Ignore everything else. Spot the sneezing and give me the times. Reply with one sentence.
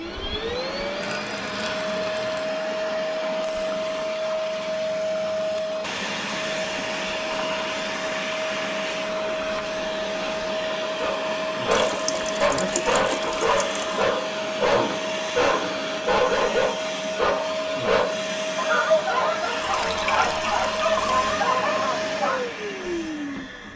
The sneezing can't be heard in this clip.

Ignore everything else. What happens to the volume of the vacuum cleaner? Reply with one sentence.
The loudness of the vacuum cleaner stays about the same.